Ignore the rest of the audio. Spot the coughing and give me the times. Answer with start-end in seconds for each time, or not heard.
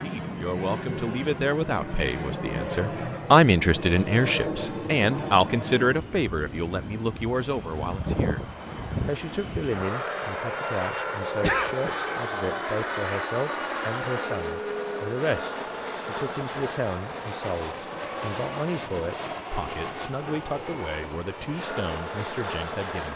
11.4-12.0.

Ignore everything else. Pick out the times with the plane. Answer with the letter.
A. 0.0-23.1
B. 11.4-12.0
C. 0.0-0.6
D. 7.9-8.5
A.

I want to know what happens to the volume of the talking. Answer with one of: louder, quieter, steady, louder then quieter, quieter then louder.
quieter.